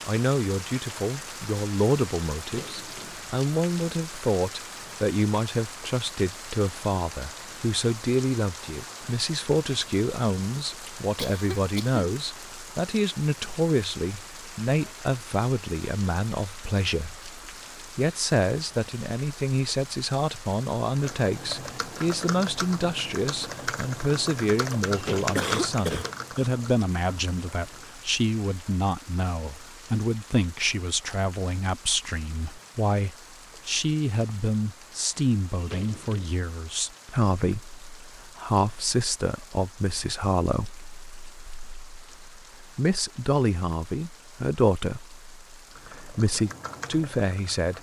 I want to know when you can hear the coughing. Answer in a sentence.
You can hear the coughing from 11.2 to 12.0 s and from 25.4 to 26.1 s.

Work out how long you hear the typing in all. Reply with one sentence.
The typing can be heard for 9 seconds in total.